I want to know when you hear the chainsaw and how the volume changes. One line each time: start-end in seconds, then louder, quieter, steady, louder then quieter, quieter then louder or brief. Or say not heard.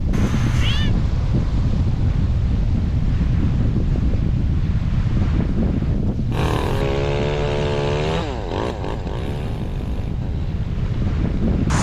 6.3-11.6 quieter.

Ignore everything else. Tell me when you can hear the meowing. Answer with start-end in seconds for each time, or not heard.
0.1-0.9.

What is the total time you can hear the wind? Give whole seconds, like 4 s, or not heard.
12 s.